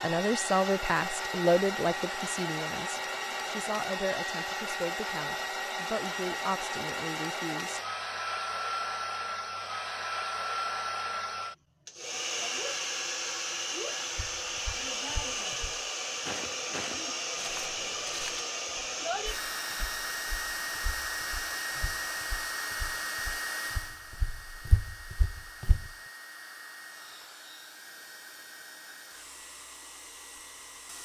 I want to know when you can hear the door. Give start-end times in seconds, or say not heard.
not heard.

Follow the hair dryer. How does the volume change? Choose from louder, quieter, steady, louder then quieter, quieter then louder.
quieter.